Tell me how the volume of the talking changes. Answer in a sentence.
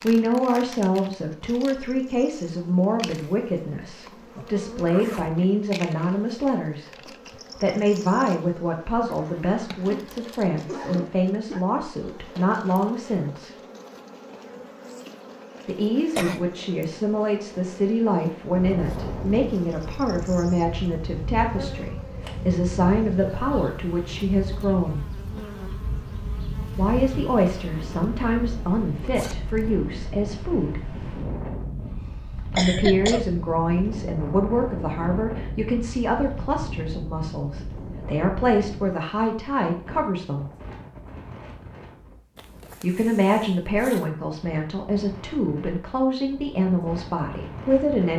The volume of the talking stays about the same.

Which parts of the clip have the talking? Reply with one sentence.
You can hear the talking from 0.0 to 13.6 s, from 15.7 to 25.1 s, from 26.8 to 30.9 s, from 32.5 to 40.5 s and from 42.8 to 48.1 s.